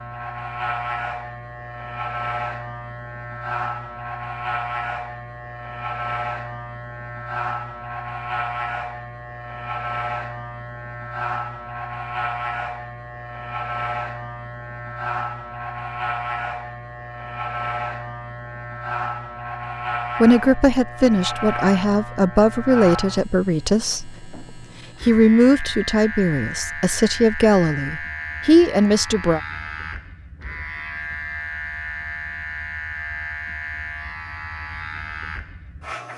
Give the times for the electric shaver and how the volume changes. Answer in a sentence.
You can hear the electric shaver from 0.0 to 36.1 s, at a steady volume.